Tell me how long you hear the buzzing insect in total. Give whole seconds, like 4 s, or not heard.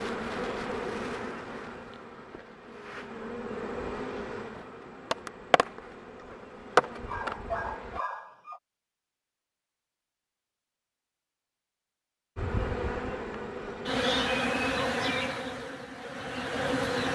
13 s.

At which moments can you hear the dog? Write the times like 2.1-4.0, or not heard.
7.0-8.6.